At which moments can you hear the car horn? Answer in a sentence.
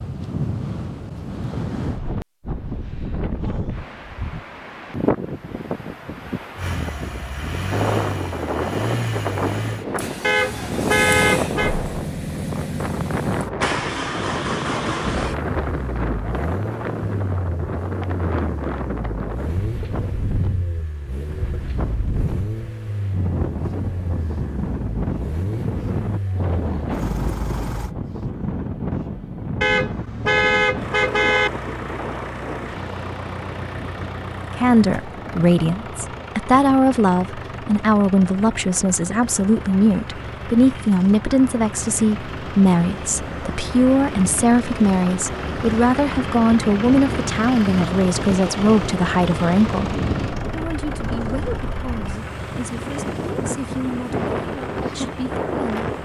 The car horn can be heard from 10.2 to 11.8 s and from 29.6 to 31.5 s.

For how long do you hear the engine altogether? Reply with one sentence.
The engine can be heard for 47 seconds in total.